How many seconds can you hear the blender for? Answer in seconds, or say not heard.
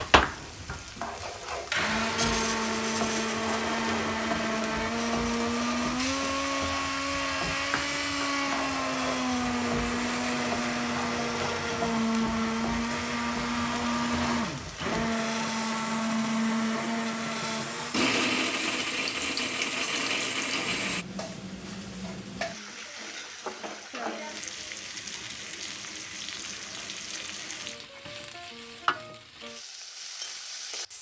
21 s.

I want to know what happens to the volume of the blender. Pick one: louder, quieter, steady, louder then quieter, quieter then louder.
steady.